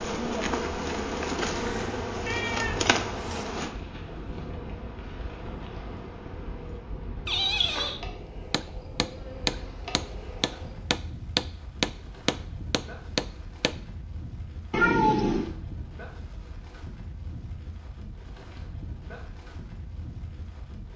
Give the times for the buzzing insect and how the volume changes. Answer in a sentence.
The buzzing insect can be heard from 0.0 to 10.9 s, getting quieter.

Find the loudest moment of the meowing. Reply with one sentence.
The loudest moment of the meowing is at 15 seconds.